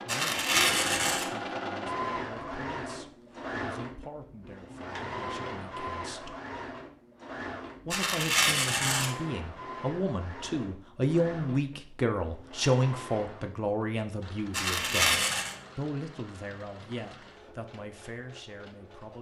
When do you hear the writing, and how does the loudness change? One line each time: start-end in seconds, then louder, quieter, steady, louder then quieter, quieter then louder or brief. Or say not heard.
not heard.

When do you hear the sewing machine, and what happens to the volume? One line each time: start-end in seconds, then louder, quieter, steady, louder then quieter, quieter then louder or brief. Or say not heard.
0.0-19.1 quieter.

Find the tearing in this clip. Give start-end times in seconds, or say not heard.
0.1-1.3, 7.9-9.2, 14.5-15.6.